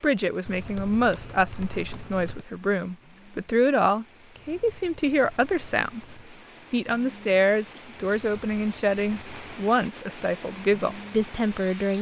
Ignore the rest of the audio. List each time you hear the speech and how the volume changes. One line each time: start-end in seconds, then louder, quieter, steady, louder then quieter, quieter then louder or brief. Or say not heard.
0.0-11.9 steady.